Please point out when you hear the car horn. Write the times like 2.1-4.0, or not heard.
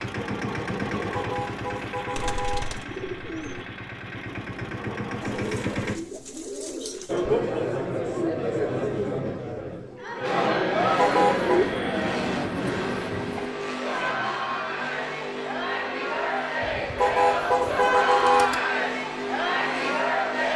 1.1-2.6, 10.9-11.7, 16.9-18.5.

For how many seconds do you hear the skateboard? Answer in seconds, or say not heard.
not heard.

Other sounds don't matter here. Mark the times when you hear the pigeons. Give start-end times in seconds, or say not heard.
2.1-3.6, 5.2-7.2, 11.1-13.5, 16.6-18.6.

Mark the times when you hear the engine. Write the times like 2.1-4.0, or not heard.
0.0-6.0, 10.2-20.5.